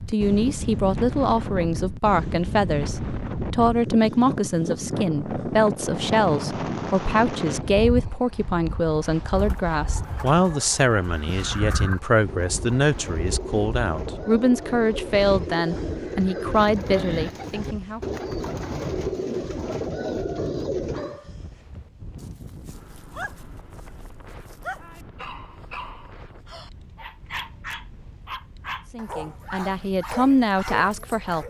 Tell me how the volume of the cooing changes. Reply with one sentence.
The volume of the cooing goes up.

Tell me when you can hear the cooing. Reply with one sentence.
The cooing can be heard from 9.3 to 21.2 s.